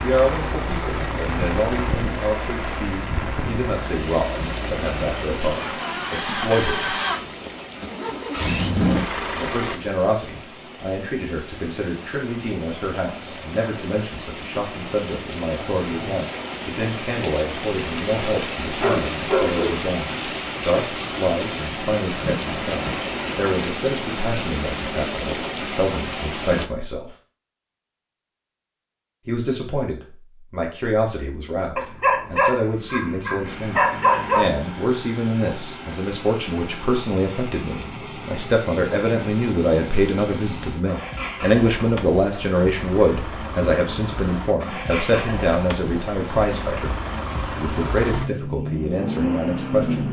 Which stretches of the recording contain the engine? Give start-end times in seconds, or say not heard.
0.0-9.8, 33.4-50.0.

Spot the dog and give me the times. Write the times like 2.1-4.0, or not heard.
18.8-19.8, 31.8-34.5.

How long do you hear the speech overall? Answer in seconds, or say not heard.
45 s.